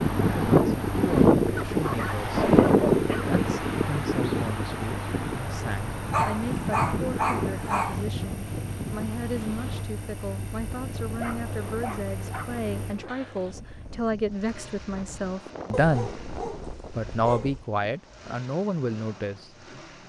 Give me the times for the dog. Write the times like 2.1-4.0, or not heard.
1.6-3.4, 6.1-8.1, 11.2-12.5, 15.7-17.6.